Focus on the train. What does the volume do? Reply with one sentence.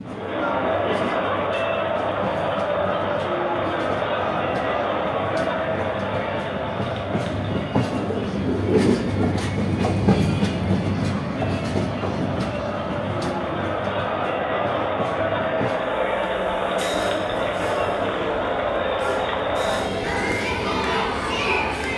The loudness of the train goes up, then down.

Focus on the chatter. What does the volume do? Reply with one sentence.
The volume of the chatter goes down, then up.